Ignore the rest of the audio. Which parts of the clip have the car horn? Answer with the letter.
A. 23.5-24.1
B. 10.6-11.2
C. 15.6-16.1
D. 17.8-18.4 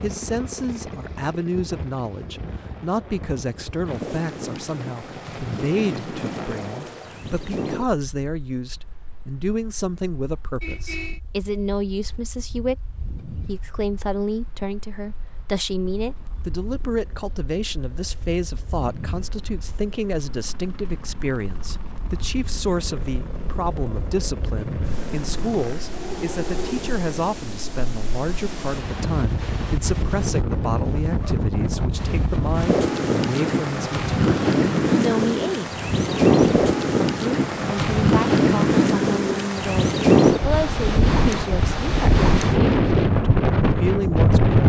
B.